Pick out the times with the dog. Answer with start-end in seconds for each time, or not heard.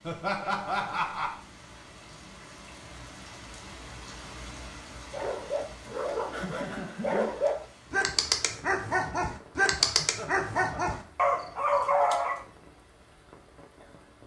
5.1-12.4.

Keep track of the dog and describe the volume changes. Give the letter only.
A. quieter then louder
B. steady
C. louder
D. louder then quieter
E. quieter
C.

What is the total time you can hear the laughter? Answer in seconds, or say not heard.
4 s.